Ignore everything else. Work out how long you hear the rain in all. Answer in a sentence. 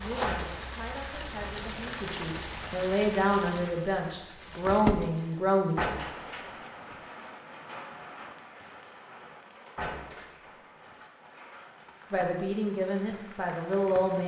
You can hear the rain for 14 seconds altogether.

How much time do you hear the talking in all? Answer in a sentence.
You can hear the talking for 8 seconds altogether.